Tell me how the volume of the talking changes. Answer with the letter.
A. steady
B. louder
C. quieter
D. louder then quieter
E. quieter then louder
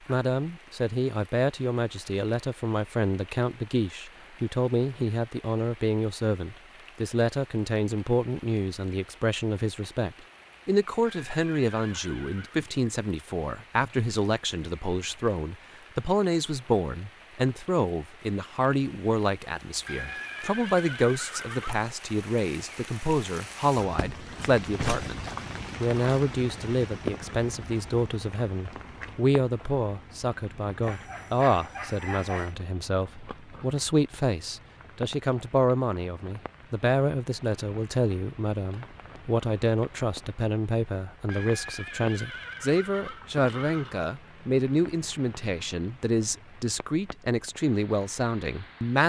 A.